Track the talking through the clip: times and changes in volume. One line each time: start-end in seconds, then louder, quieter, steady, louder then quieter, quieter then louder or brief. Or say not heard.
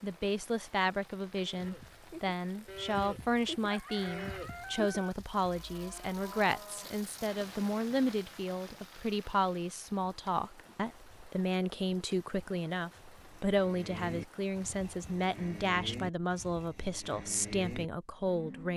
0.0-18.7 steady.